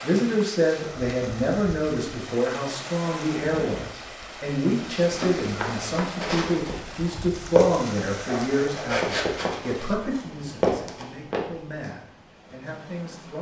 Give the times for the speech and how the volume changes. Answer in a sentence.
You can hear the speech from 0.0 to 13.3 s, getting quieter.